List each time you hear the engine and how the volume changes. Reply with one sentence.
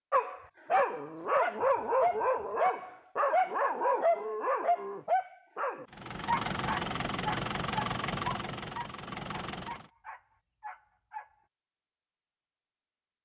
The engine can be heard from 5.8 to 9.9 s, getting quieter.